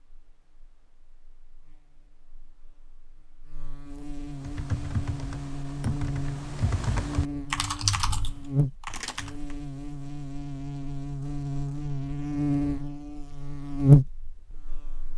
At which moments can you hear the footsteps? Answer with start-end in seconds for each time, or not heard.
not heard.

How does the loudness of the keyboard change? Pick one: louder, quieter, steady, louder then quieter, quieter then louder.
louder then quieter.